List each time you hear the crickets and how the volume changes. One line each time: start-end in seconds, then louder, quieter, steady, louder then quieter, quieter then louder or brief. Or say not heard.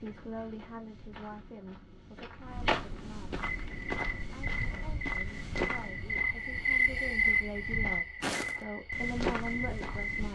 3.4-10.2 louder then quieter.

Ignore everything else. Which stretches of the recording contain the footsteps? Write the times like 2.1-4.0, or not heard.
0.0-10.2.